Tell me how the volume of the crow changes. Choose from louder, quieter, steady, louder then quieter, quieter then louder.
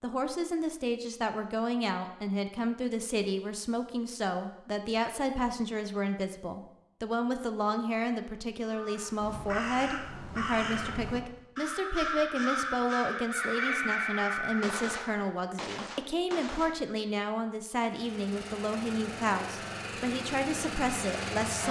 louder.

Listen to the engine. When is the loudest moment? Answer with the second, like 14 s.
21 s.